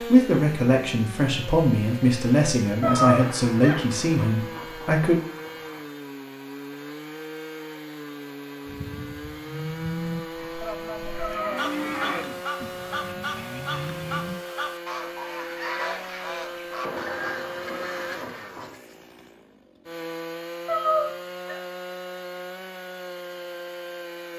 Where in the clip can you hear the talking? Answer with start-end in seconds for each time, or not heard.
0.0-5.2.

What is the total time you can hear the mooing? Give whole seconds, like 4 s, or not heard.
6 s.